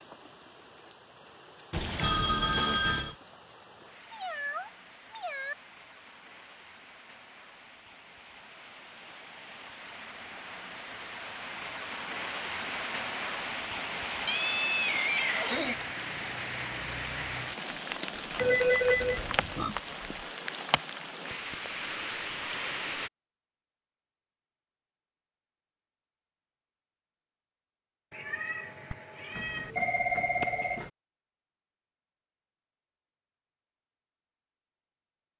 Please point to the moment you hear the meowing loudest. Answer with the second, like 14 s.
15 s.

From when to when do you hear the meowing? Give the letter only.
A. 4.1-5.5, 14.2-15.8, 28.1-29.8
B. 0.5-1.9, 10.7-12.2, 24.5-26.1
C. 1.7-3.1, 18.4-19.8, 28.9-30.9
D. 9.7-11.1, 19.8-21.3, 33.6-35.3
A.